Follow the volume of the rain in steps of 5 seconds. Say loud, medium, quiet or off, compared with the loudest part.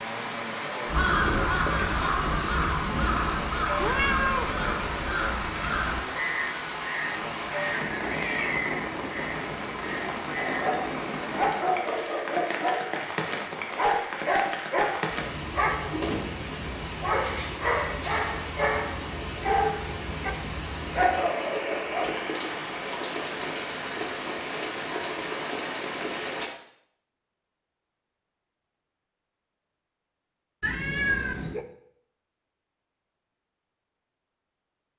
loud, loud, loud, loud, loud, loud, off.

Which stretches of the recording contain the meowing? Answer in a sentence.
The meowing can be heard from 3.8 to 4.5 s and from 30.6 to 31.6 s.